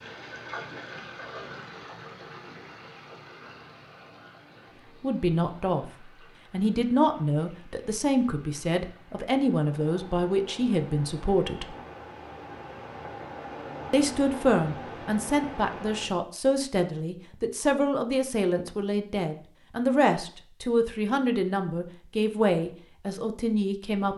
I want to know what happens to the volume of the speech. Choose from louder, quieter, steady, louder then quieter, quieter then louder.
steady.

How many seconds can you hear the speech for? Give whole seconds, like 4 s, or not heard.
17 s.